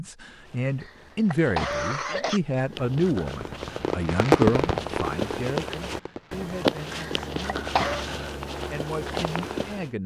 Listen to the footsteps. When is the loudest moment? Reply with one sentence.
The volume of the footsteps peaks at 7 seconds.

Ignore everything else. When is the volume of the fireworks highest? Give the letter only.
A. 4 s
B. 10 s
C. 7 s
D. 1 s
A.